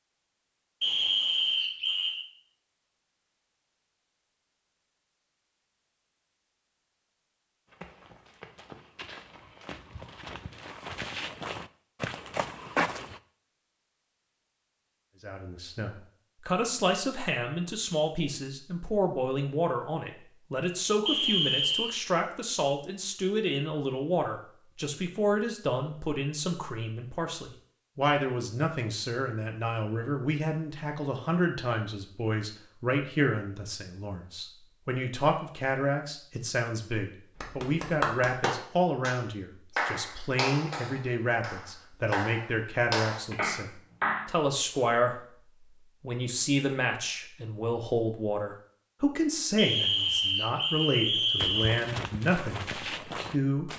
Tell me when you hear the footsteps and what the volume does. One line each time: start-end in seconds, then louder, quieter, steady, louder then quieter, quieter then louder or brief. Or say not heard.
7.7-13.2 louder
51.4-53.7 brief.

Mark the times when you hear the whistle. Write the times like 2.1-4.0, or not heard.
0.8-2.2, 21.1-21.9, 49.5-51.9.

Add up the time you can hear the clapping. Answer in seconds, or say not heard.
7 s.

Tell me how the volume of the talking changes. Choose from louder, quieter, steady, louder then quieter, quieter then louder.
steady.